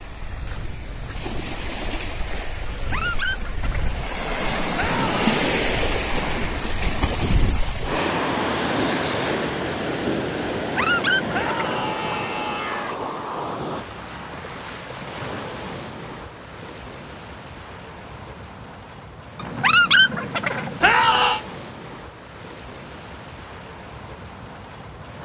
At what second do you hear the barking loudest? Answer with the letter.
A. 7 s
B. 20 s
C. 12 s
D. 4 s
B.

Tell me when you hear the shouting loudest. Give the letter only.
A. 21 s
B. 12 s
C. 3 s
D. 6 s
A.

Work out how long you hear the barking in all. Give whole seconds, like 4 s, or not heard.
5 s.